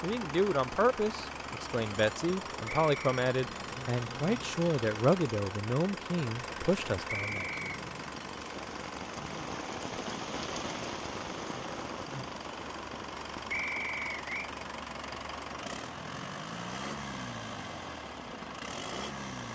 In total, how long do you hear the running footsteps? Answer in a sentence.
You can't hear the running footsteps here.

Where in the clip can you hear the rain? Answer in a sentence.
You can hear the rain from 0.1 to 19.5 s.